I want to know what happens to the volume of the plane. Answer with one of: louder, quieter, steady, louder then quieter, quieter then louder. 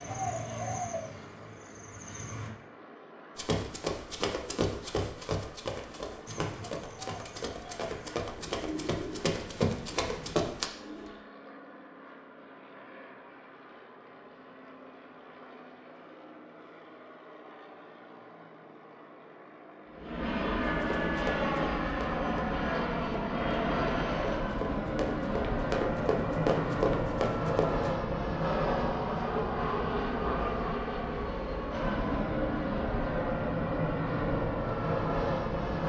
louder.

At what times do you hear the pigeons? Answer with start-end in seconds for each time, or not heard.
0.0-2.5, 6.2-11.1.